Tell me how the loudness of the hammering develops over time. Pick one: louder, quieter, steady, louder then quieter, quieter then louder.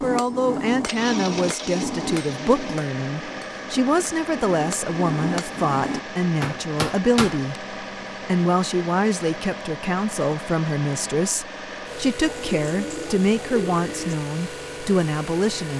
quieter then louder.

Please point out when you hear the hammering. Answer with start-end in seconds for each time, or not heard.
0.0-7.5.